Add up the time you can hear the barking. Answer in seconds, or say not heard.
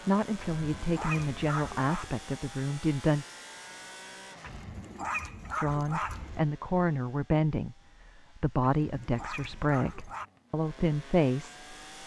5 s.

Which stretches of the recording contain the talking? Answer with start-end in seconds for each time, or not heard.
0.1-3.2, 5.5-11.8.